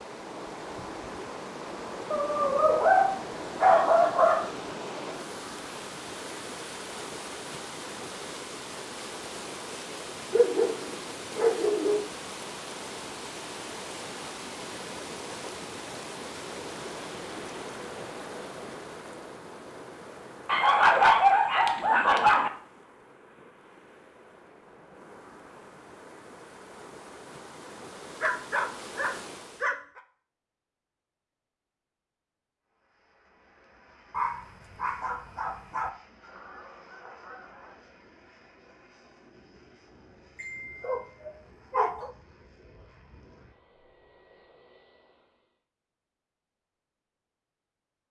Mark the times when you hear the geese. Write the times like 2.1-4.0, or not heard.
36.2-37.8.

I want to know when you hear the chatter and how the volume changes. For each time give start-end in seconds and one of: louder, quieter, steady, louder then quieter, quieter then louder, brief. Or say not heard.
not heard.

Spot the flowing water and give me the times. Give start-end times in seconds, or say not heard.
0.0-29.8.